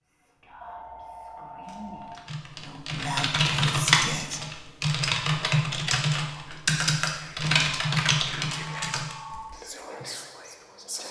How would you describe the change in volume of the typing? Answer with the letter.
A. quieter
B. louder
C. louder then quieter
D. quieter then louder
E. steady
E.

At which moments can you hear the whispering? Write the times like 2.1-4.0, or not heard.
0.0-4.5, 6.2-11.0.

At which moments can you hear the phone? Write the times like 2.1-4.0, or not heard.
0.6-2.1, 8.5-9.5.